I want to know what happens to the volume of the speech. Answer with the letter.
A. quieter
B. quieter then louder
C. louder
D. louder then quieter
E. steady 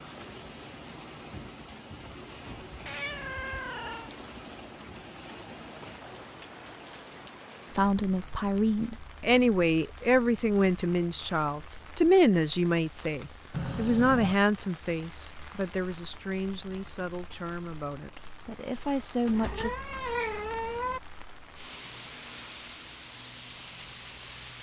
A.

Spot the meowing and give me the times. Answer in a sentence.
The meowing can be heard from 2.9 to 4.1 s, from 13.5 to 14.3 s and from 19.2 to 21.0 s.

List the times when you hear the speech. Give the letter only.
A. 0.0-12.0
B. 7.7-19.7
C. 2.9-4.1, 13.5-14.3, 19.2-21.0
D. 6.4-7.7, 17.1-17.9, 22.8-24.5
B.